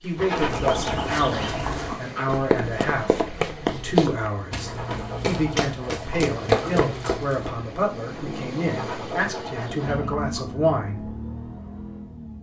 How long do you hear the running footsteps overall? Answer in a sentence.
The running footsteps can be heard for 7 seconds in total.